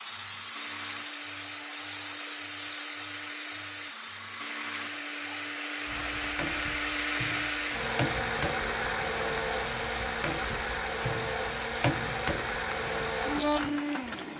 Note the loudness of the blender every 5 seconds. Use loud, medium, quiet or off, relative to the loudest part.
medium, loud, loud.